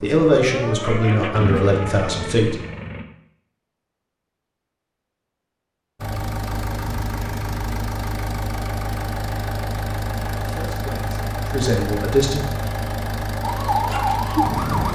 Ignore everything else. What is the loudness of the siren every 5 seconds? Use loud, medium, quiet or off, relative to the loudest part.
medium, off, loud.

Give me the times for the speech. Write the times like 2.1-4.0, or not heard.
0.0-2.5, 10.4-12.4.